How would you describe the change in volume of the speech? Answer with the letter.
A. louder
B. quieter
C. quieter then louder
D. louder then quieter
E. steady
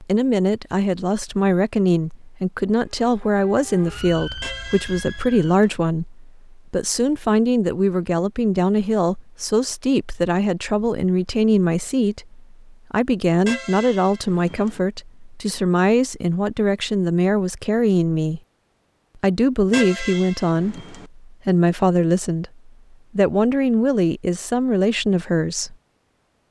E.